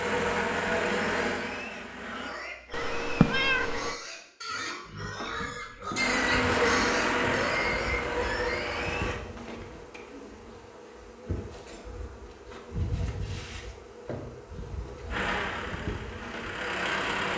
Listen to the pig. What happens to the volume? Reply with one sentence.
The loudness of the pig goes up.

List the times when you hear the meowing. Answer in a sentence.
The meowing can be heard from 2.7 to 4.0 s.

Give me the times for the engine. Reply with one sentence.
You can hear the engine from 0.0 to 2.4 s, from 6.0 to 9.2 s and from 15.1 to 17.3 s.